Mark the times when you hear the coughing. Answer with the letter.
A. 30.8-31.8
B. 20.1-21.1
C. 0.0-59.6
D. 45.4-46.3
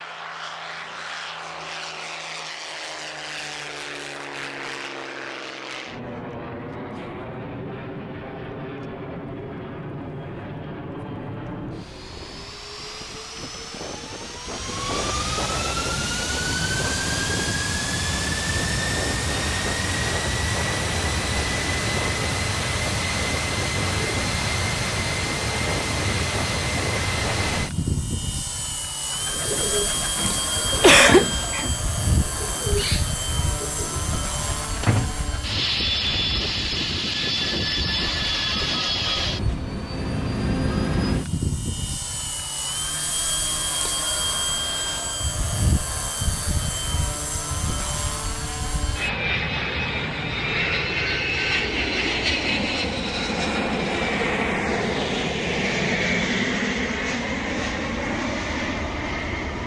A.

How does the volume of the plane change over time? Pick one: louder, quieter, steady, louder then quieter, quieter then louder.
louder.